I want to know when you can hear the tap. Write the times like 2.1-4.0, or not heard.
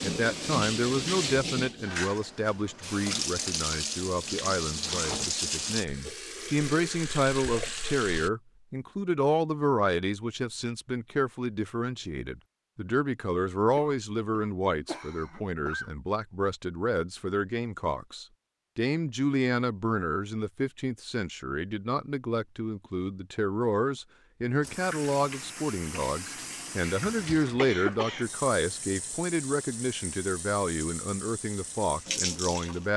0.0-8.3, 24.6-32.9.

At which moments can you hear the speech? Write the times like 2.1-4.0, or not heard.
0.0-32.9.